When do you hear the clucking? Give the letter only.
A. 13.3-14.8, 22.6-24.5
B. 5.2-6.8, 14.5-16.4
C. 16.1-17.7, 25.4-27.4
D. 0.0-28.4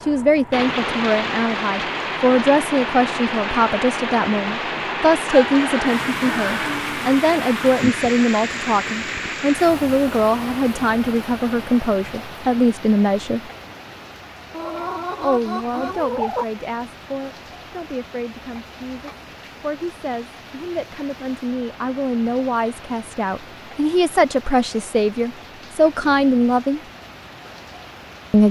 B.